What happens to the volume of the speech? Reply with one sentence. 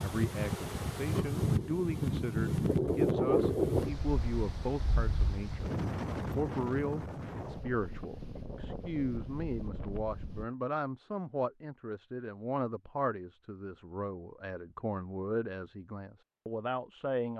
The volume of the speech stays about the same.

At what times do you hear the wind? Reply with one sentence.
The wind can be heard from 0.0 to 10.4 s.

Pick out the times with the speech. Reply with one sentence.
You can hear the speech from 0.0 to 17.3 s.